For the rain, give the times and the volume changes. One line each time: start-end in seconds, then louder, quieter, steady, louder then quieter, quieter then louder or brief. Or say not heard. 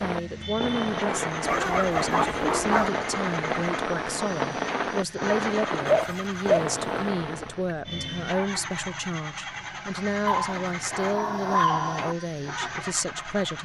0.0-7.7 steady.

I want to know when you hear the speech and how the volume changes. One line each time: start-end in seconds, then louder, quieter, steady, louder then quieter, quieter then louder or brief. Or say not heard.
0.0-13.6 steady.